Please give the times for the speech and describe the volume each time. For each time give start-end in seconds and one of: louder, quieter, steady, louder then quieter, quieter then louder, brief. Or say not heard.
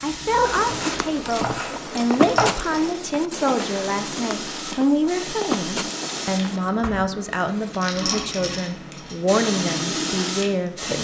0.0-10.9 steady.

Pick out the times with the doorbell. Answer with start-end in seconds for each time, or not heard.
not heard.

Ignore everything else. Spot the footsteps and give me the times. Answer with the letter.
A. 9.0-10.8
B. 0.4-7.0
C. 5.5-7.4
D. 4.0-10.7
B.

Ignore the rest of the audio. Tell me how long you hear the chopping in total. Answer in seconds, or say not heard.
2 s.